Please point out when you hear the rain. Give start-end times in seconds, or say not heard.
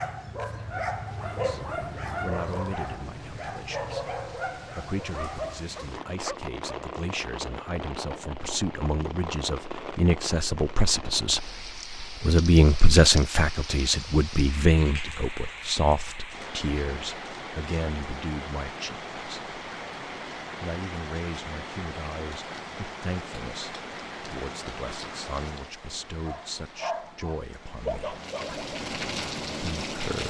0.0-30.2.